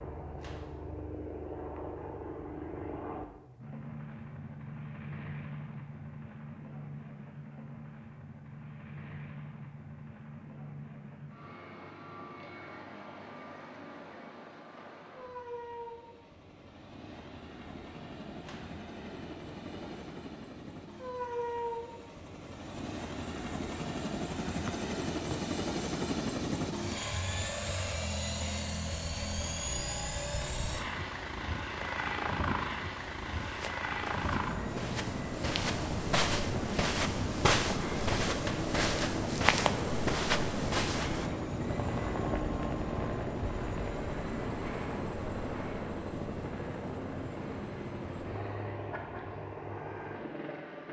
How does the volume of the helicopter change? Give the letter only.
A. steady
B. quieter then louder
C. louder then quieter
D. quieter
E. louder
E.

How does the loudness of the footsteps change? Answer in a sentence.
The loudness of the footsteps goes up.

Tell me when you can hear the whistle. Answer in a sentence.
The whistle can be heard from 24.6 to 25.4 s.